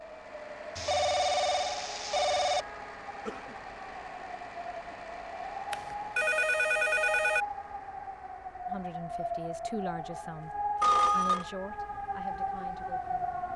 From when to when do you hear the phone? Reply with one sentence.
The phone can be heard from 0.8 to 2.6 s, from 5.7 to 7.5 s and from 10.8 to 11.4 s.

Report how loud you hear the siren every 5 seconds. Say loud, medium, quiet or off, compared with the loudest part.
medium, loud, loud.